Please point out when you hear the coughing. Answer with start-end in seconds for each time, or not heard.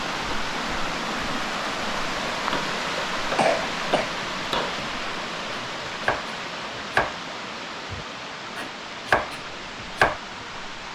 3.4-4.1.